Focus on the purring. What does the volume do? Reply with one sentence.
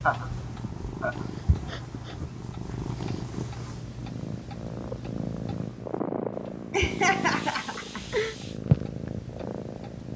The loudness of the purring goes up.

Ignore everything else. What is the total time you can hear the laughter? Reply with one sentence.
The laughter can be heard for 4 seconds in total.